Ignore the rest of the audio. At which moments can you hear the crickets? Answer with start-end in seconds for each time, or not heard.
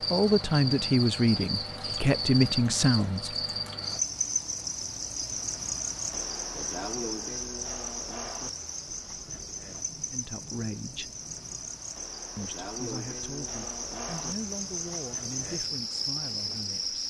0.0-17.0.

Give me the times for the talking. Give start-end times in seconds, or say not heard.
0.1-3.4, 10.1-11.1, 12.3-17.0.